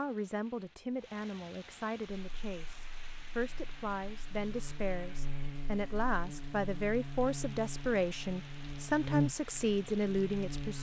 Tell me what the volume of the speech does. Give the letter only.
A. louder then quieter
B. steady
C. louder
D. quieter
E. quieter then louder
C.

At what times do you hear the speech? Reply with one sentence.
You can hear the speech from 0.0 to 10.7 s.